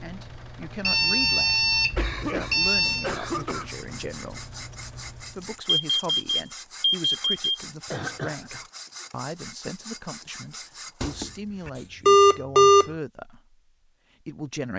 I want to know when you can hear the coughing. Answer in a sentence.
The coughing can be heard from 1.9 to 3.7 s and from 7.8 to 8.7 s.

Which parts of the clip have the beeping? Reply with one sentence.
You can hear the beeping from 0.8 to 3.1 s, from 5.7 to 7.5 s and from 11.0 to 12.9 s.